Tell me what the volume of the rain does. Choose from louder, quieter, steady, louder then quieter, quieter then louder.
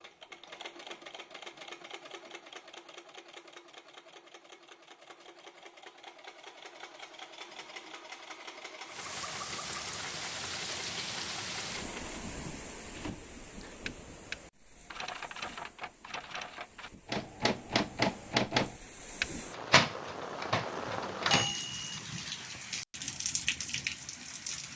quieter then louder.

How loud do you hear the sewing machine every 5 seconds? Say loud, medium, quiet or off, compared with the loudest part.
loud, loud, loud, off, off.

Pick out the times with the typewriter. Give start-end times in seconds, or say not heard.
12.9-22.0.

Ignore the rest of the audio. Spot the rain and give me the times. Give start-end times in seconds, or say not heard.
8.8-24.7.